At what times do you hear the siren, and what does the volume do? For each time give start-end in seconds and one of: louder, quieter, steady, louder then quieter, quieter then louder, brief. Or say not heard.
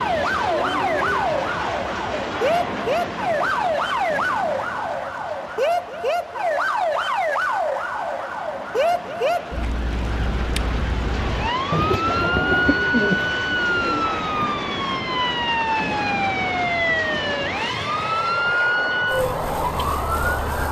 0.0-20.6 steady.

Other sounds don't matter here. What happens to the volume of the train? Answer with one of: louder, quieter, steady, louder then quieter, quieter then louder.
quieter then louder.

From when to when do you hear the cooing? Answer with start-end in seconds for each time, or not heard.
11.7-14.5.